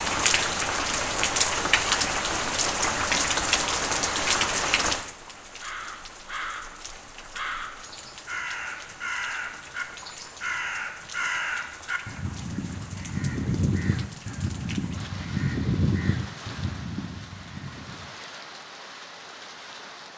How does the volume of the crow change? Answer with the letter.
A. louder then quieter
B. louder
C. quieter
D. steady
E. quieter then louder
B.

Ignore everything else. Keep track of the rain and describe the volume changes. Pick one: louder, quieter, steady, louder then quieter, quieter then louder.
quieter.